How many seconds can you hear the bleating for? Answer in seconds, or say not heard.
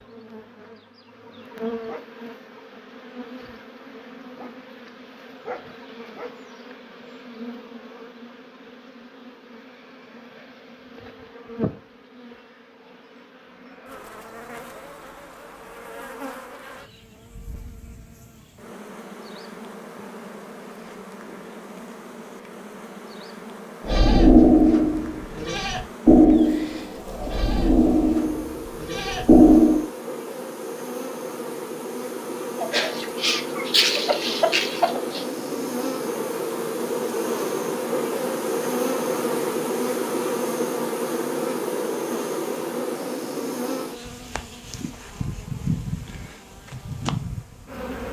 6 s.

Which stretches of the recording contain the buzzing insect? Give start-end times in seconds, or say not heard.
0.0-48.0.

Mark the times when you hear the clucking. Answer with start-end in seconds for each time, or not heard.
32.6-35.2.